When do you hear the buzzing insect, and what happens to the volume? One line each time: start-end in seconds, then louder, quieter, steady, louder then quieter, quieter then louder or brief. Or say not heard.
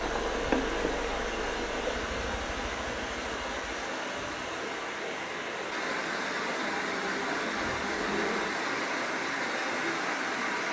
0.0-8.6 quieter then louder.